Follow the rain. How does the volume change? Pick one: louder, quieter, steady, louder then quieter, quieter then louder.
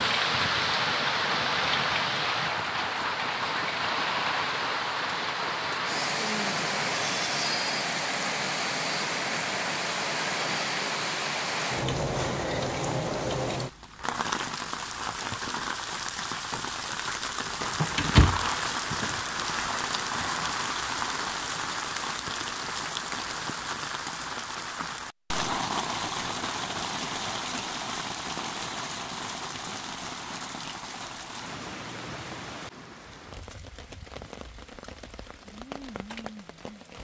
quieter.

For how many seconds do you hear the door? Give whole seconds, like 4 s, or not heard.
2 s.